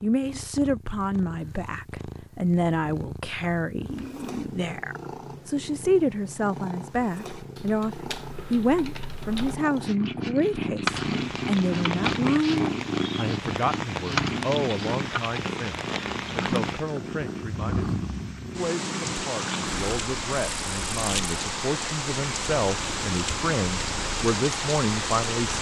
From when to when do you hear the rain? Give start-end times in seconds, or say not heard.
10.8-25.5.